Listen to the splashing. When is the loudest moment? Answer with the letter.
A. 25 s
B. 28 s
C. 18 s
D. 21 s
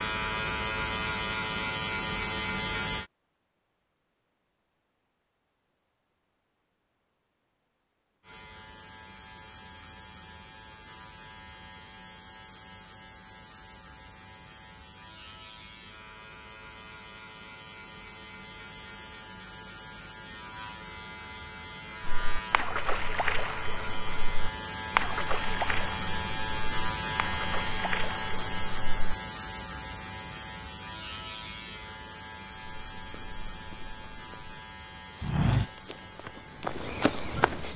A.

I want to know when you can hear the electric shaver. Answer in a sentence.
The electric shaver can be heard from 0.0 to 3.1 s and from 8.2 to 37.7 s.